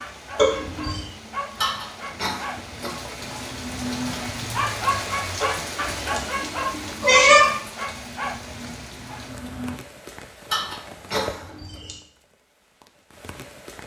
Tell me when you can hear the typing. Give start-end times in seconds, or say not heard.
not heard.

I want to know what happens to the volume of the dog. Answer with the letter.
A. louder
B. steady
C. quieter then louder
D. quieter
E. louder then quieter
E.